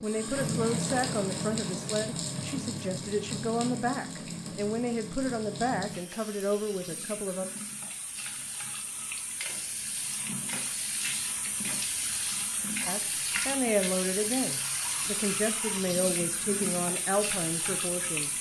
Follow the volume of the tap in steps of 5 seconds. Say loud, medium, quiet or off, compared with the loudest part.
loud, medium, loud, loud.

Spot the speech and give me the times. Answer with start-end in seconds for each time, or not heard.
0.0-7.5, 12.8-18.3.